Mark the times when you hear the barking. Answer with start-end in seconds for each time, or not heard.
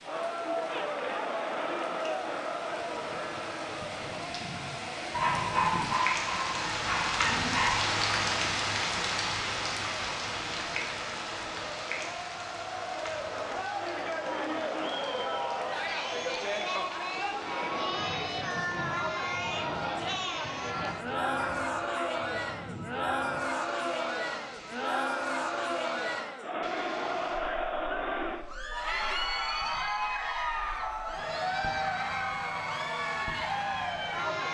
5.1-8.1, 21.4-22.1.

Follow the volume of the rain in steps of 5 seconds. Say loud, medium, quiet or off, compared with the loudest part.
quiet, loud, medium, quiet, quiet, quiet, quiet.